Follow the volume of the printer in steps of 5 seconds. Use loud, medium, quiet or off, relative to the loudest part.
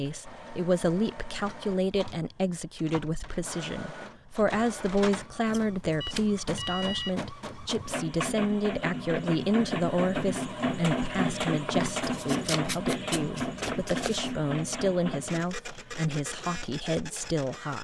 quiet, medium, loud, medium.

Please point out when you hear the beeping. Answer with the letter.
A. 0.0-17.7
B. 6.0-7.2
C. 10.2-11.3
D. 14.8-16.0
B.